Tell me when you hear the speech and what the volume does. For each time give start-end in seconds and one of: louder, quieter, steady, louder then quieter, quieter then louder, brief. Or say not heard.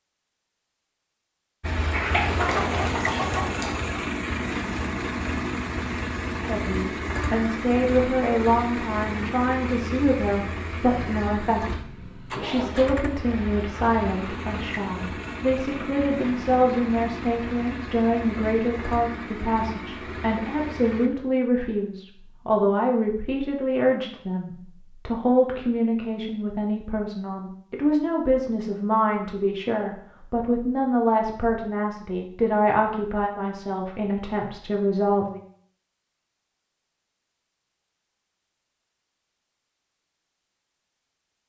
6.5-35.4 steady.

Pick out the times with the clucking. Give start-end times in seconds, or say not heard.
1.8-4.0.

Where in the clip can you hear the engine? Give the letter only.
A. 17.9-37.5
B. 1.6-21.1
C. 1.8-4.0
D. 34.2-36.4
B.